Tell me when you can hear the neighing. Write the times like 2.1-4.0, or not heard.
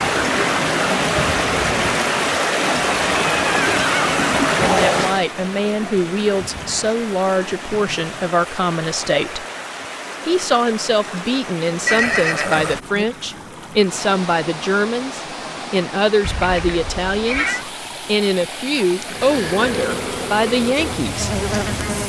3.1-5.0, 11.8-13.1, 16.2-17.6.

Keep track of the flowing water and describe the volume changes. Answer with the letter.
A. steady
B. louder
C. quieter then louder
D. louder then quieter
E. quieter
E.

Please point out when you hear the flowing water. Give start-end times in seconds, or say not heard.
0.0-22.0.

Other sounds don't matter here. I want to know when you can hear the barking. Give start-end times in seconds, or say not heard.
not heard.